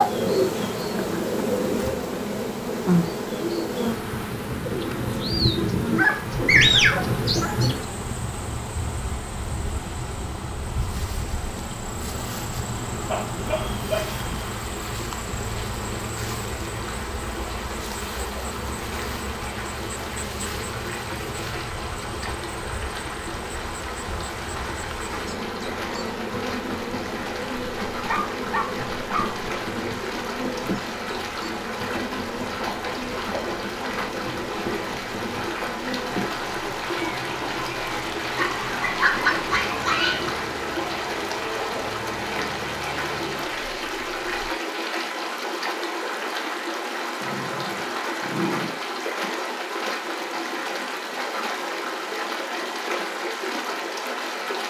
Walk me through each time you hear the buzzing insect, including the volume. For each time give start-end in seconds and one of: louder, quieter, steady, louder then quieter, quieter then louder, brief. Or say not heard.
0.0-44.5 quieter.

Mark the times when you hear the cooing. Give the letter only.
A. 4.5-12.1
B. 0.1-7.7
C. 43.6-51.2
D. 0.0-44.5
B.